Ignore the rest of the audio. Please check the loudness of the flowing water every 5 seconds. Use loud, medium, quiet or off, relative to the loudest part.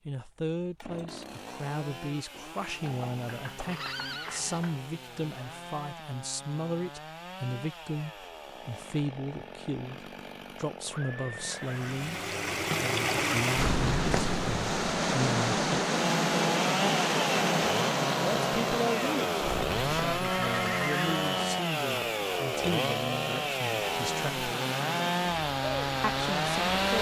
off, off, loud, loud, quiet, medium.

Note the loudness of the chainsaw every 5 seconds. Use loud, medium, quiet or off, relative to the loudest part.
quiet, quiet, quiet, loud, loud, loud.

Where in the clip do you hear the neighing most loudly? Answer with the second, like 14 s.
21 s.